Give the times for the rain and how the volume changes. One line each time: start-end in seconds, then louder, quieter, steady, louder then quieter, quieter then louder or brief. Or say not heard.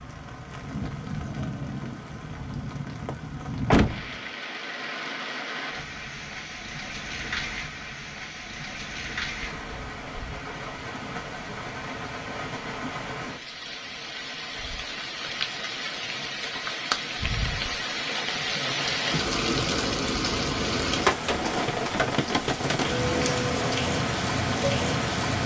0.0-25.4 louder.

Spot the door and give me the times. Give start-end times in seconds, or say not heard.
3.7-4.2.